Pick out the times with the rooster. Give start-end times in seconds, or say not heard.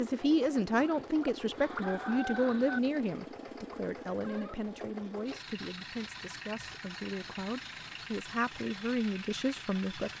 0.8-2.8.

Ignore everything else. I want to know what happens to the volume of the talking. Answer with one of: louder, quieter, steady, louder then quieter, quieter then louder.
quieter then louder.